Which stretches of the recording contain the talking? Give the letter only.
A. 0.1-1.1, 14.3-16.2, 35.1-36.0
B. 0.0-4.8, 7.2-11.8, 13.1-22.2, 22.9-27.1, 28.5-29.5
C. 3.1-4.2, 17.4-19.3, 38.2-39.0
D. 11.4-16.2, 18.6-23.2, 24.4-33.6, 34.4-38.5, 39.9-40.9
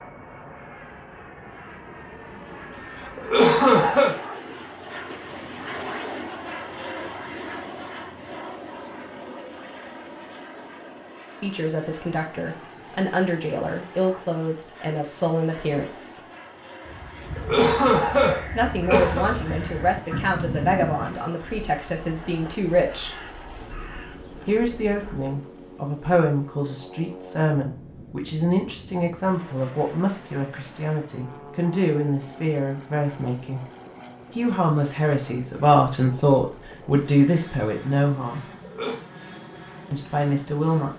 D.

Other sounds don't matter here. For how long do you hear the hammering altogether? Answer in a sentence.
You can't hear the hammering here.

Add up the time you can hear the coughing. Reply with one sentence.
You can hear the coughing for 4 seconds altogether.